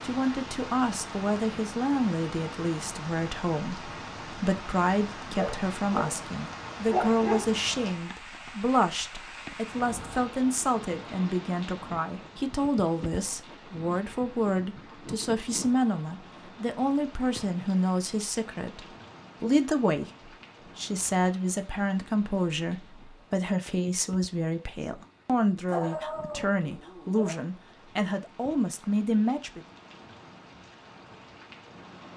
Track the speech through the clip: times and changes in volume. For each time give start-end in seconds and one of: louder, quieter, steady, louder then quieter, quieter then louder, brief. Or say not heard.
0.0-29.6 steady.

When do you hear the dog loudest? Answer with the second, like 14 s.
7 s.